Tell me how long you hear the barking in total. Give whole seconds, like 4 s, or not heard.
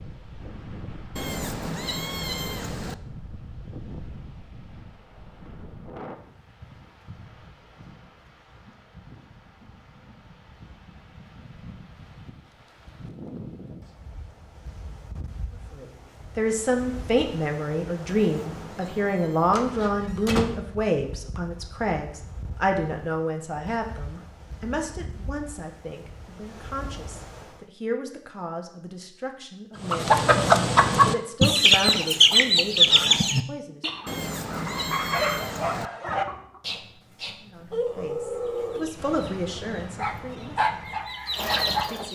7 s.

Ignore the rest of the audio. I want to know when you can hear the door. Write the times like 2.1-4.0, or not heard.
19.5-20.5.